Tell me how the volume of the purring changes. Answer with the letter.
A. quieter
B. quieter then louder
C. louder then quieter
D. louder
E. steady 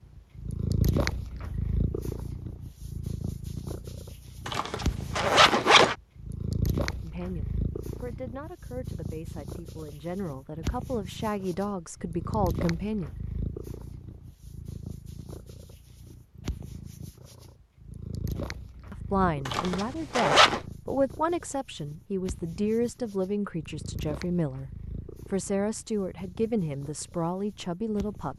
A.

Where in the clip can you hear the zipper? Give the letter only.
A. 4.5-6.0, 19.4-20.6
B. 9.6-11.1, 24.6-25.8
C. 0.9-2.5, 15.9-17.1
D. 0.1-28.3
A.